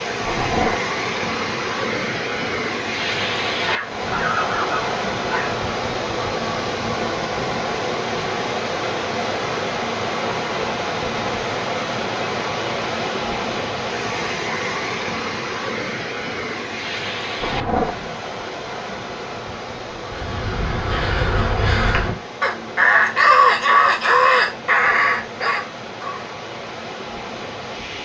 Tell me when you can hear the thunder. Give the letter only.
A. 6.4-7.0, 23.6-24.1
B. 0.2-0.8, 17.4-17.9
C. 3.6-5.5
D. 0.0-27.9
B.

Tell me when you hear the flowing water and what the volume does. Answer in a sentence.
The flowing water can be heard from 0.0 to 27.9 s, getting quieter.